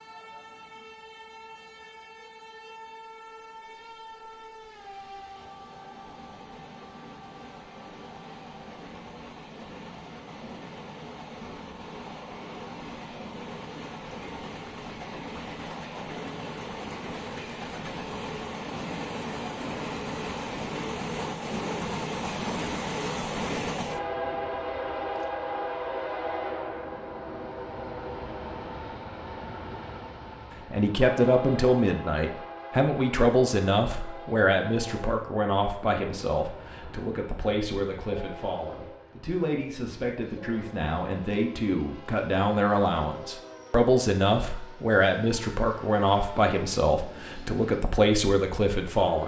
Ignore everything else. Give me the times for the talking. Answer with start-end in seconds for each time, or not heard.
30.7-49.2.